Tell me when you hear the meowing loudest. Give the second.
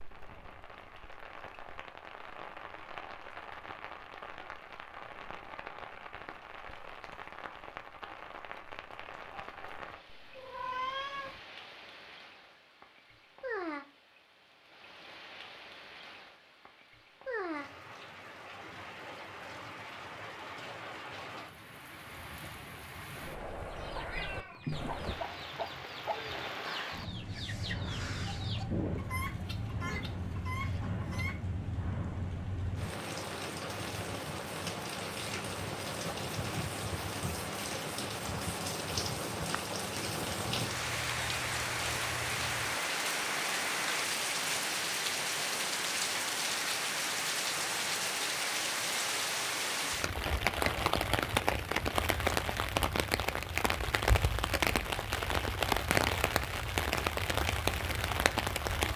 11 s.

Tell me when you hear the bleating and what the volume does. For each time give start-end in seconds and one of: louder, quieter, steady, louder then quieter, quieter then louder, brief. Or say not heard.
not heard.